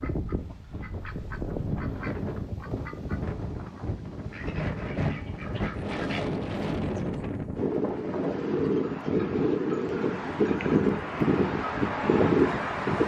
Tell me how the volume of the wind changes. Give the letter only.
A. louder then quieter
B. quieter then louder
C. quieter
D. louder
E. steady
D.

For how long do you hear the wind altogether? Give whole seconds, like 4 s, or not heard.
13 s.